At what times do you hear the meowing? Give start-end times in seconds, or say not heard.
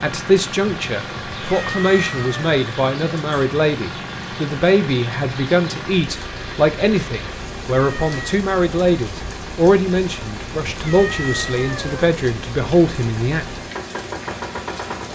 1.4-2.5, 7.8-8.4, 10.7-12.1.